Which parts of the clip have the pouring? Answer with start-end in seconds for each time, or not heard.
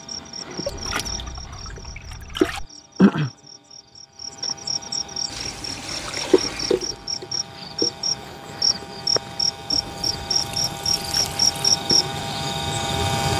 0.7-2.6, 5.2-7.2, 9.7-11.7.